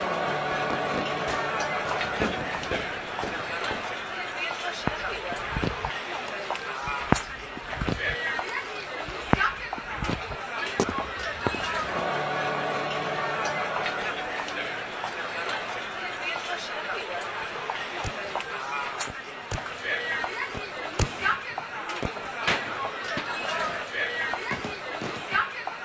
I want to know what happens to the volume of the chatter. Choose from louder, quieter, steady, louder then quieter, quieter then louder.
steady.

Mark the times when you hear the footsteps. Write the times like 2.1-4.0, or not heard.
4.8-11.8.